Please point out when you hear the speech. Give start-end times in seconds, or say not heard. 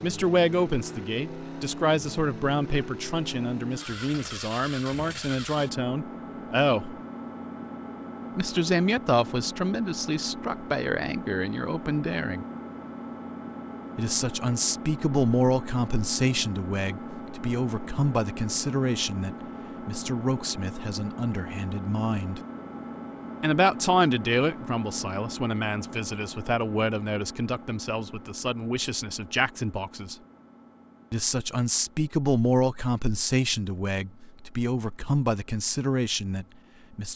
0.0-7.0, 8.3-12.4, 13.9-22.4, 23.4-30.1, 31.1-37.1.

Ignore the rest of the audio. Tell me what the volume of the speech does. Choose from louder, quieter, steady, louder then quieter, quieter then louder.
steady.